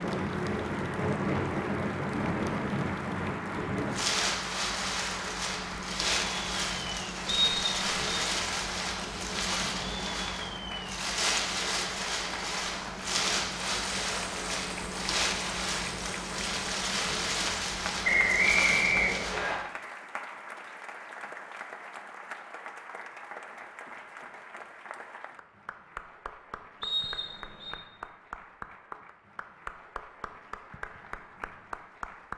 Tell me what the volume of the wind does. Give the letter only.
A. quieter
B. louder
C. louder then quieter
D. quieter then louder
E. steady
E.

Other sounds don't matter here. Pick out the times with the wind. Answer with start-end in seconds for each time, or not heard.
0.0-19.6.